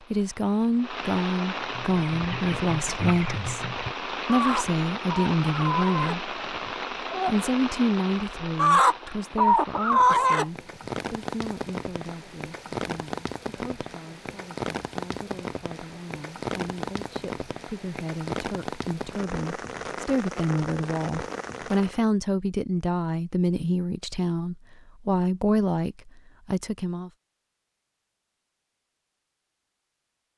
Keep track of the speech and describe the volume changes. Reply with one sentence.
The loudness of the speech goes down, then up.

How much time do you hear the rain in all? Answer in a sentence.
The rain can be heard for 22 seconds in total.